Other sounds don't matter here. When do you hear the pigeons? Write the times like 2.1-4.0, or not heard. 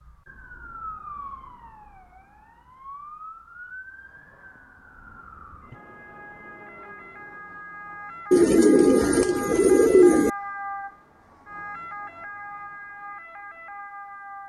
8.3-10.3.